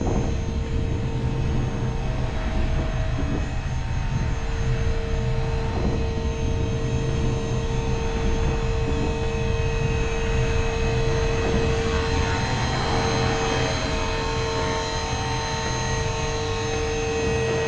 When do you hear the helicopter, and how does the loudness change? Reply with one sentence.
The helicopter can be heard from 0.0 to 17.6 s, getting louder.